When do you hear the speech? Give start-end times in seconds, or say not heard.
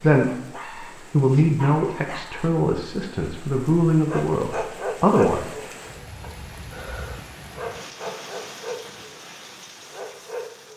0.0-5.5.